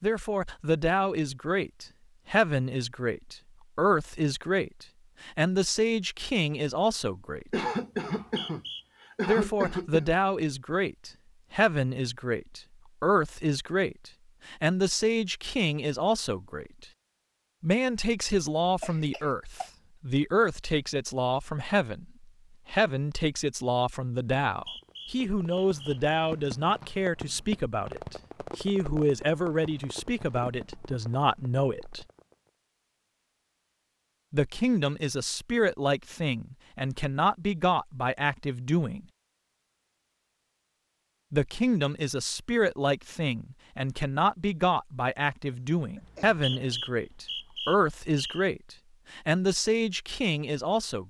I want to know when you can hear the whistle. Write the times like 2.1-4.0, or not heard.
8.2-8.8, 24.5-26.0, 46.0-48.5.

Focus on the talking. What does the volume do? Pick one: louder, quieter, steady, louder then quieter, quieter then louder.
steady.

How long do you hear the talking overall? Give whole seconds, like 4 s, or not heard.
44 s.